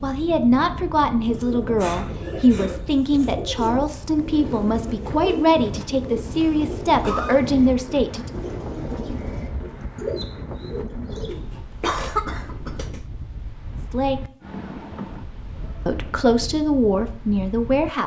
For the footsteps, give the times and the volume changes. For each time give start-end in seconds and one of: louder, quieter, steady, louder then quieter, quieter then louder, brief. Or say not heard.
not heard.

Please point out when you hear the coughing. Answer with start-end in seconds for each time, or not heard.
6.2-7.4, 11.8-12.9.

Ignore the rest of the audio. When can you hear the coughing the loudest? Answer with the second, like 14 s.
12 s.